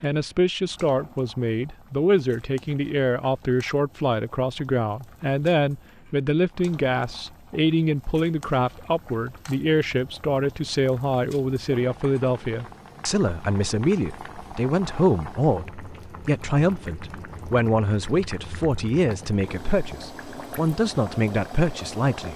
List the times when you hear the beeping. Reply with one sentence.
You can't hear the beeping here.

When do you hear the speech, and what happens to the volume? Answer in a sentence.
The speech can be heard from 0.0 to 22.3 s, at a steady volume.